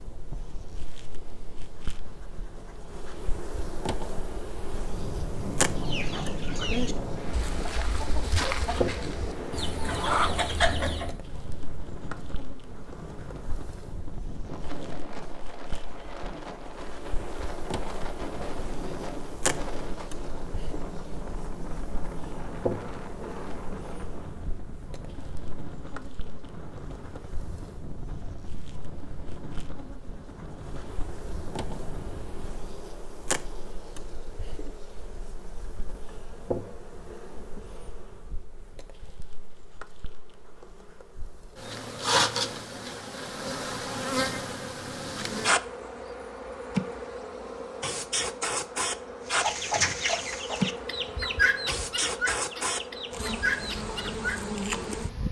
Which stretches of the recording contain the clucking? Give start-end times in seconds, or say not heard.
5.8-11.2, 49.3-54.4.